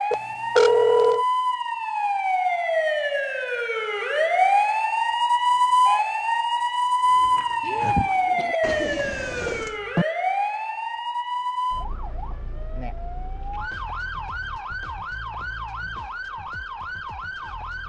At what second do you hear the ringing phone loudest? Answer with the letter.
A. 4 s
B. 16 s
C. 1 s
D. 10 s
C.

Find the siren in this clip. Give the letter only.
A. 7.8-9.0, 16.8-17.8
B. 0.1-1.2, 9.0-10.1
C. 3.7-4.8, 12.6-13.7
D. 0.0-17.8
D.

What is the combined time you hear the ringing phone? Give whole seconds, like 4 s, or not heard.
2 s.